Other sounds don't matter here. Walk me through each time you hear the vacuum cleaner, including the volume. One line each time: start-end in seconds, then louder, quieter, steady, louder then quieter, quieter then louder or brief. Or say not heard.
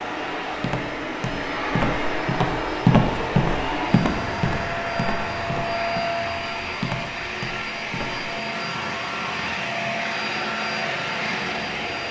0.0-12.0 steady.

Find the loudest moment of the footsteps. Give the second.
3 s.